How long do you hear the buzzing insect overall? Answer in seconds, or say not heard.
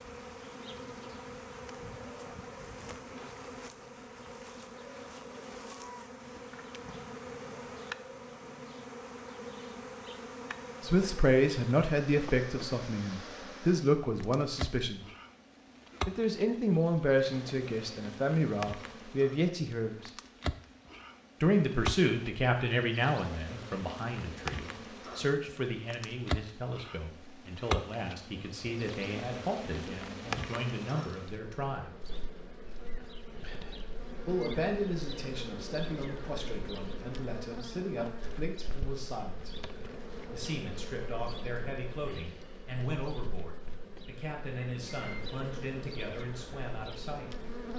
48 s.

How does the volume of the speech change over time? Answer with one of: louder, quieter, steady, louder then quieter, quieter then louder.
quieter.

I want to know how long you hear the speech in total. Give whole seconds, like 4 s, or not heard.
31 s.